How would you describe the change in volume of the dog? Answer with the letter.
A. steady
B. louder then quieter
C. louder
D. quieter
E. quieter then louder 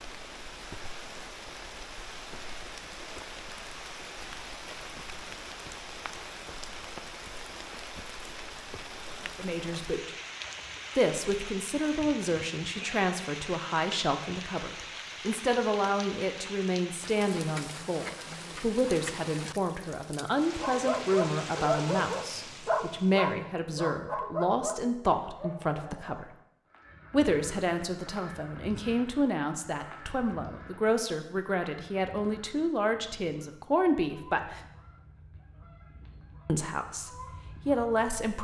D.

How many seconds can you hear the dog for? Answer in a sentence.
You can hear the dog for 6 seconds altogether.